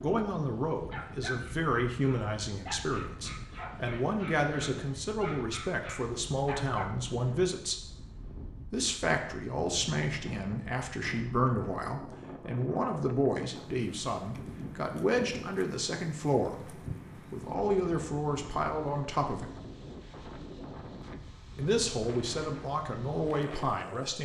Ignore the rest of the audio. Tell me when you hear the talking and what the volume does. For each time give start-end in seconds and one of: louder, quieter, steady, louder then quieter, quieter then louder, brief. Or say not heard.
0.0-7.8 steady
8.7-19.5 steady
21.6-24.2 brief.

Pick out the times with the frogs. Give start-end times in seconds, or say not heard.
not heard.